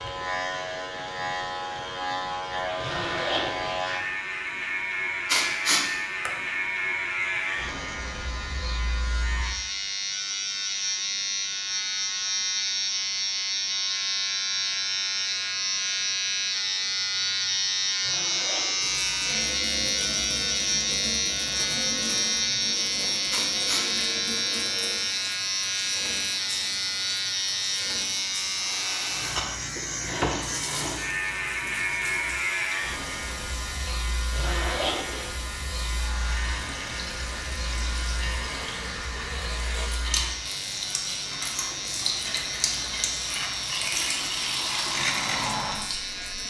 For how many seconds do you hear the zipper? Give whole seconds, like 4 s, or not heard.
3 s.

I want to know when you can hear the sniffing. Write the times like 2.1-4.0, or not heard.
5.2-6.3, 23.3-23.9.